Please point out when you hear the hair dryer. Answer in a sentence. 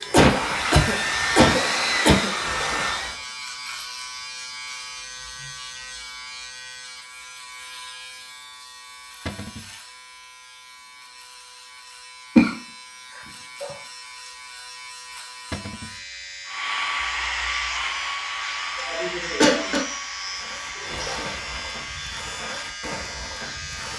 You can hear the hair dryer from 0.0 to 3.2 s and from 16.4 to 22.1 s.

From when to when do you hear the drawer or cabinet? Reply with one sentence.
You can hear the drawer or cabinet from 9.2 to 9.7 s and from 15.5 to 15.9 s.